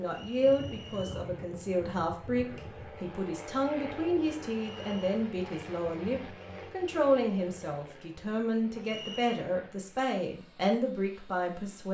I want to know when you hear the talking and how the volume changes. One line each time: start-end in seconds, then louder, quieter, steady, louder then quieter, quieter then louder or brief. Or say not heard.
0.0-11.9 steady.